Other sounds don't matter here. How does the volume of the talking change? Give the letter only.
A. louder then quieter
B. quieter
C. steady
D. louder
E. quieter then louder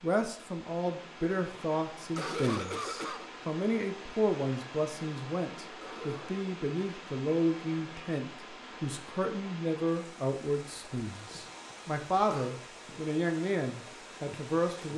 C.